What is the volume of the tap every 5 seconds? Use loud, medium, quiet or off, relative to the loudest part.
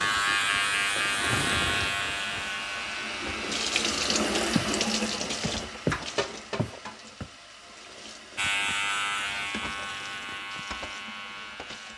loud, medium, quiet.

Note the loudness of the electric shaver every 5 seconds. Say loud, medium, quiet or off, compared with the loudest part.
loud, loud, medium.